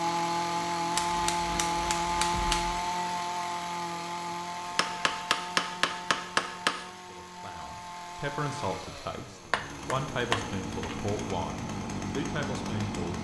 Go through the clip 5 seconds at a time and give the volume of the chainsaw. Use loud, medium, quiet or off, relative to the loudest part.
loud, medium, medium.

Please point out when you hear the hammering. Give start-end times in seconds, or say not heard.
0.9-2.8, 4.7-6.8, 9.5-10.9.